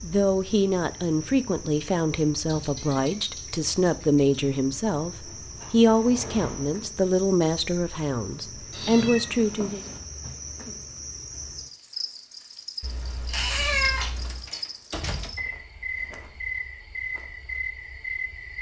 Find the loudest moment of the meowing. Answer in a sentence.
The loudest moment of the meowing is at 14 seconds.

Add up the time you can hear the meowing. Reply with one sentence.
The meowing can be heard for 5 seconds in total.